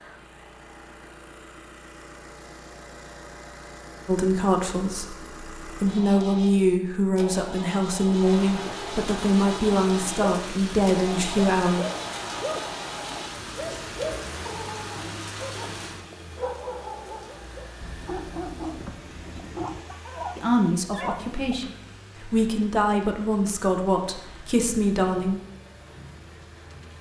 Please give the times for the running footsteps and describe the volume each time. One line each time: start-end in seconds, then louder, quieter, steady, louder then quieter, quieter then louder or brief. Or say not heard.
not heard.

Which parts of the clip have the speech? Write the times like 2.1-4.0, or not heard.
4.0-11.8, 20.4-25.4.